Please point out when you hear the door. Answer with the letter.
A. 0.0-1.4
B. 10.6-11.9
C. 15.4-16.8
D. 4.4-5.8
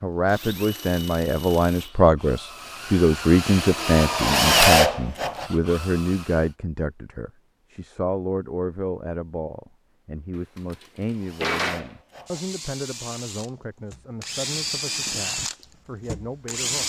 B.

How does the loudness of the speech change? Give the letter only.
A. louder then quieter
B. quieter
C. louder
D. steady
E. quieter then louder
B.